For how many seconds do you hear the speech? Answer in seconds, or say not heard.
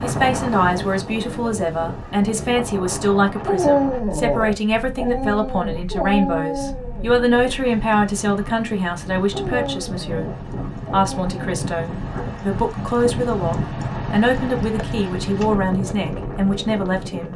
17 s.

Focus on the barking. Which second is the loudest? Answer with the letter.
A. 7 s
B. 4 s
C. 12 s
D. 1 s
B.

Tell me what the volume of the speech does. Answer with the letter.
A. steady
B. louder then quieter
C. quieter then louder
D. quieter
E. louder
A.